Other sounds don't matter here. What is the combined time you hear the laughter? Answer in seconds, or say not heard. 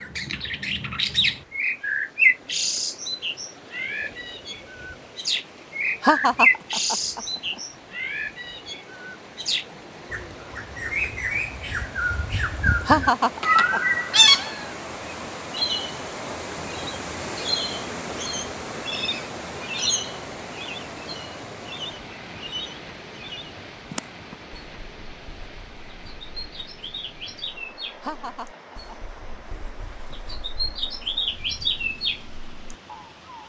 3 s.